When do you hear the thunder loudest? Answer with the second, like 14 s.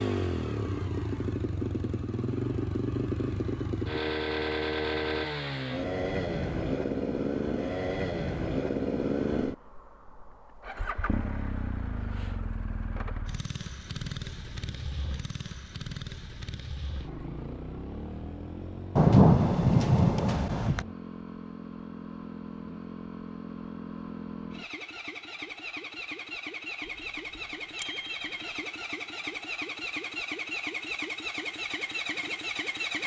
19 s.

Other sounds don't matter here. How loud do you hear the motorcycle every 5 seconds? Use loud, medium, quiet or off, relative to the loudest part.
loud, loud, medium, medium, medium, medium, loud.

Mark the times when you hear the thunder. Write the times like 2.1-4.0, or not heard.
18.9-20.9.